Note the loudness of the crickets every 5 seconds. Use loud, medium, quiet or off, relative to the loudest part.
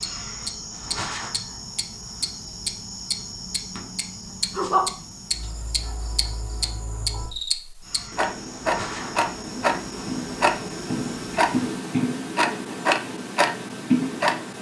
loud, medium, medium.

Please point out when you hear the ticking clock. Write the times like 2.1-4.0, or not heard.
0.0-14.5.